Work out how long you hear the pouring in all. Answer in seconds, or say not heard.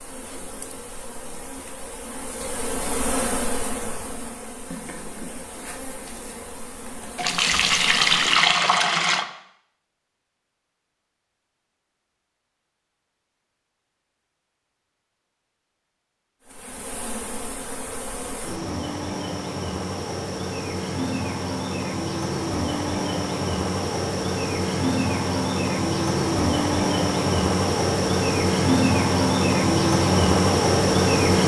2 s.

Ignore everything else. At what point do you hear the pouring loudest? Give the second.
8 s.